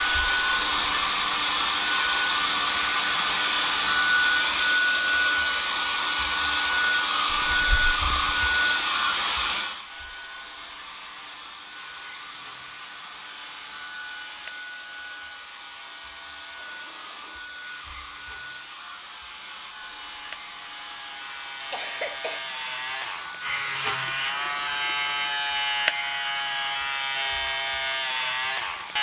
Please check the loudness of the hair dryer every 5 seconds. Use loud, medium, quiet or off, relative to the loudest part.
loud, loud, quiet, quiet, quiet, quiet.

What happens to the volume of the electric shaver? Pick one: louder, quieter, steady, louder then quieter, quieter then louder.
louder.